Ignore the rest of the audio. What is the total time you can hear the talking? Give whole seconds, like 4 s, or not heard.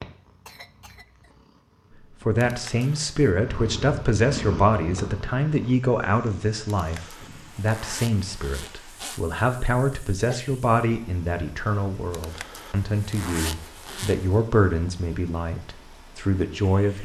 15 s.